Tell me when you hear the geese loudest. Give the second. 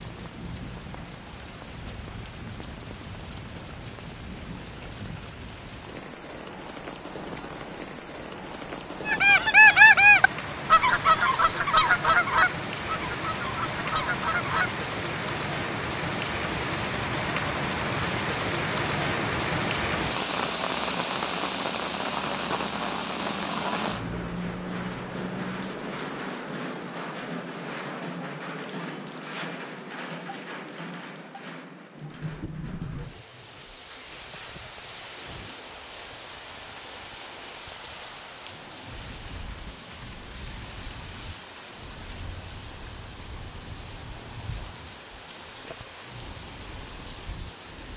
10 s.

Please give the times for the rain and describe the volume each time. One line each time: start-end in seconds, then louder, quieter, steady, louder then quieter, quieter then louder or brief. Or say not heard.
0.0-47.9 louder then quieter.